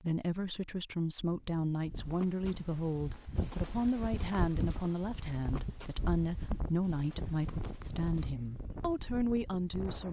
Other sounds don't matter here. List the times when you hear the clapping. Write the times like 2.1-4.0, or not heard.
not heard.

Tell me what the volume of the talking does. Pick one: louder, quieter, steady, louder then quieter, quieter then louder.
steady.